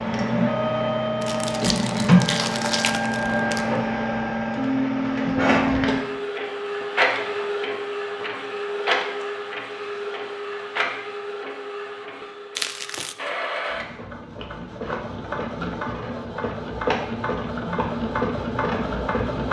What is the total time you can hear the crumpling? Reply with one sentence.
The crumpling can be heard for 3 seconds in total.